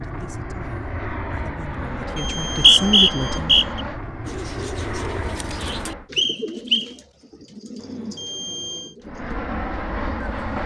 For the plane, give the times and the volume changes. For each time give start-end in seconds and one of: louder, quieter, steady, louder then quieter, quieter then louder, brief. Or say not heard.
0.0-6.1 steady
9.0-10.6 brief.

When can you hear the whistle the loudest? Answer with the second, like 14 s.
3 s.